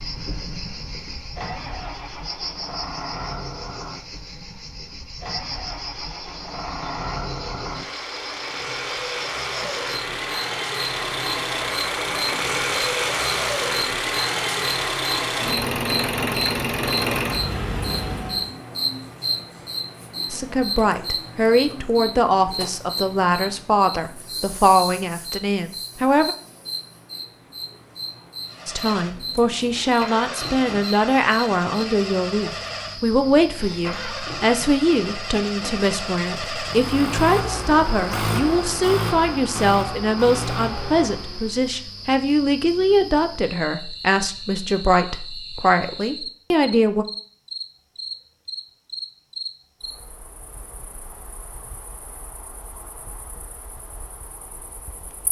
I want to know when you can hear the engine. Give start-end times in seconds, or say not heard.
0.0-18.6, 28.4-41.5.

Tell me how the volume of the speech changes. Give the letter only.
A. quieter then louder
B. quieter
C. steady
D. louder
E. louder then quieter
C.